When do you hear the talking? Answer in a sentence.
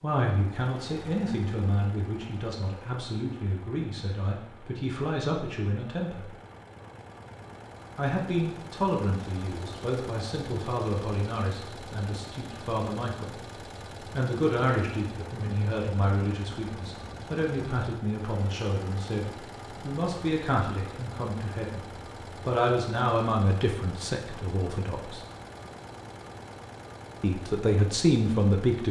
You can hear the talking from 0.0 to 6.3 s, from 8.0 to 13.3 s, from 14.2 to 25.2 s and from 27.2 to 28.8 s.